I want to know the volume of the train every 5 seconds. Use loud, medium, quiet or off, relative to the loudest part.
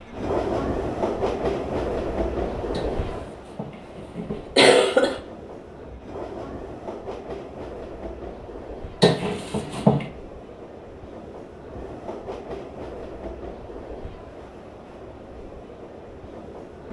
loud, medium, medium, quiet.